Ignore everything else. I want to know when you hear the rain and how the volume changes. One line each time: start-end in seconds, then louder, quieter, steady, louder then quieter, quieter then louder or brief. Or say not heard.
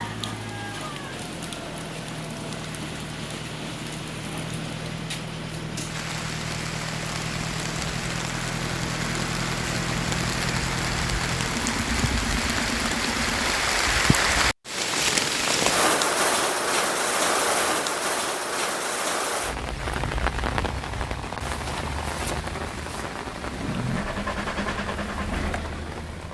0.0-26.2 louder then quieter.